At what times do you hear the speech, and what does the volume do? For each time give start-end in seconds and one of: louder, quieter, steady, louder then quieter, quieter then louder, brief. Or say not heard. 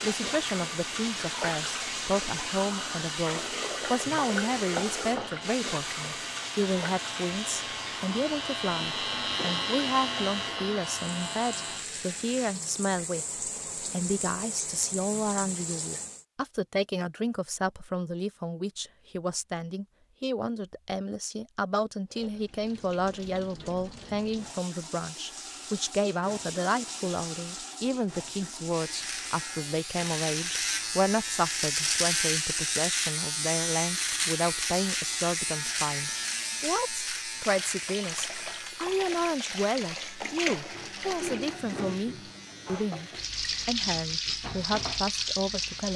0.0-45.9 steady.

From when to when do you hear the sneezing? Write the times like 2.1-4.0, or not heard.
not heard.